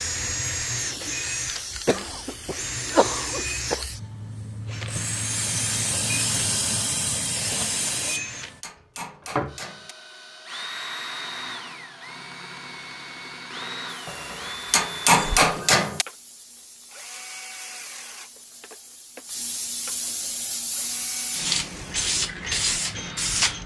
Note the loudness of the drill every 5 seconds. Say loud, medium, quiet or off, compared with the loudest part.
loud, loud, medium, medium, medium.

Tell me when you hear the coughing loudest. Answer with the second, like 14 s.
3 s.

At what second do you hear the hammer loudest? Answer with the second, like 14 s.
15 s.